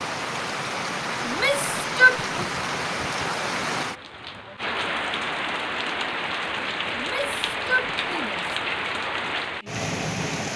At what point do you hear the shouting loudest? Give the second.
2 s.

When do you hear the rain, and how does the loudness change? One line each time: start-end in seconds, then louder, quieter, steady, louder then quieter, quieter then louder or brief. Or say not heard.
0.0-10.5 steady.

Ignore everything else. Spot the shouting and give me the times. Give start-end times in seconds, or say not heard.
1.2-2.5, 7.0-8.6.